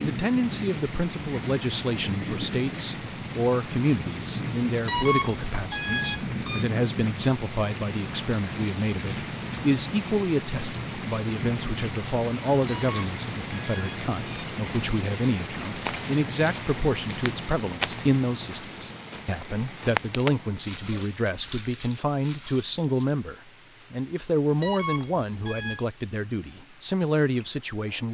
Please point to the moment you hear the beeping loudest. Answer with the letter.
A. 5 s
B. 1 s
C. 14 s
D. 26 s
A.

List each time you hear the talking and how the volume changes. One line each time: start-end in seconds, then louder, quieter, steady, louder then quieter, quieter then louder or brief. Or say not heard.
0.0-28.0 steady.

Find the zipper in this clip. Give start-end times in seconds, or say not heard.
not heard.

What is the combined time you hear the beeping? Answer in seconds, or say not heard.
5 s.